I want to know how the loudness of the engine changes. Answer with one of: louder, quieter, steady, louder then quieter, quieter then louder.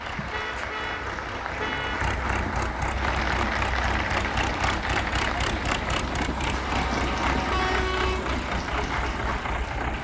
louder.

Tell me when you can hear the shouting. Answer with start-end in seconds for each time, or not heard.
not heard.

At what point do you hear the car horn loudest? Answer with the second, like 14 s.
8 s.